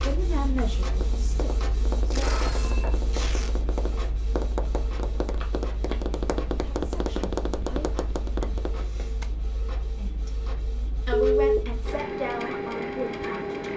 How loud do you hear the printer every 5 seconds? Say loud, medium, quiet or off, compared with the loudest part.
medium, medium, loud.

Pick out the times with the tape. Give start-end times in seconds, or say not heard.
2.0-3.5.